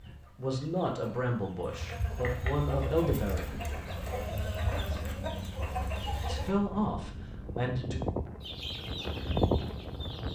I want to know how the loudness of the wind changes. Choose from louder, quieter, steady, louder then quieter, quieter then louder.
louder.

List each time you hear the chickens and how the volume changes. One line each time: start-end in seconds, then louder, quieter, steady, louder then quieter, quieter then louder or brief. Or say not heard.
0.0-6.5 louder
8.4-10.3 brief.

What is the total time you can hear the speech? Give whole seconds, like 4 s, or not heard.
5 s.